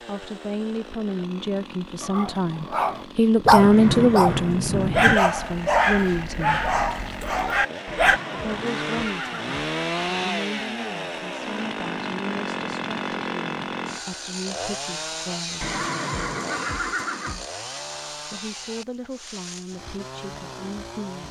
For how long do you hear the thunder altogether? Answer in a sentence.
The thunder can be heard for 2 seconds in total.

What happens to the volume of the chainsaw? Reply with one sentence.
The loudness of the chainsaw goes up, then down.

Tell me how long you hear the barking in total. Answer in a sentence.
You can hear the barking for 6 seconds altogether.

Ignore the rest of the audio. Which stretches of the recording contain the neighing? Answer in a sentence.
The neighing can be heard from 3.7 to 4.6 s, from 7.8 to 9.5 s and from 15.6 to 17.4 s.